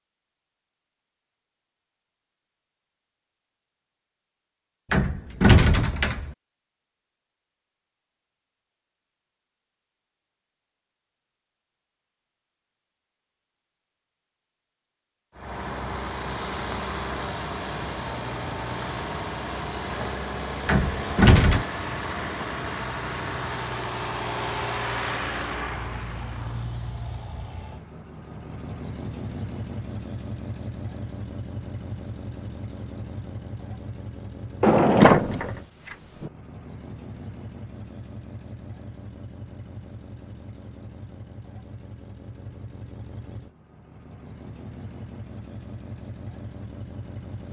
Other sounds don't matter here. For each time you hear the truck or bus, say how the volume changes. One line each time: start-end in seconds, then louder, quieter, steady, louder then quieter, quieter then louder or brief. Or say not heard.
15.3-47.4 quieter.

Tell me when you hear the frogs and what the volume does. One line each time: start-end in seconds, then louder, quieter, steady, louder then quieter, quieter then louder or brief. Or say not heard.
not heard.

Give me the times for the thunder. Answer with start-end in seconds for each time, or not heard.
not heard.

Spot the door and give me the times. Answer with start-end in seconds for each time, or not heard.
4.9-6.3, 20.6-21.6, 34.6-36.3.